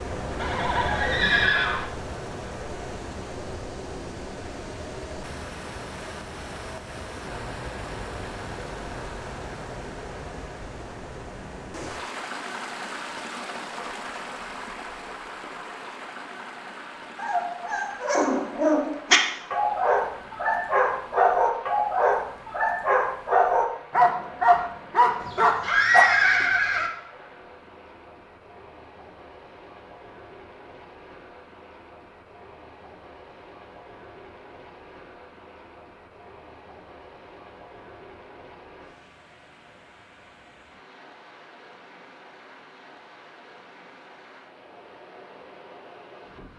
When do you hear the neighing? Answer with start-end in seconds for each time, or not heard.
0.4-1.9, 25.2-26.9.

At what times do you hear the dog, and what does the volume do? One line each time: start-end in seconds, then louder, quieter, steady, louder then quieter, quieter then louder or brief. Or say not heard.
17.1-26.1 steady.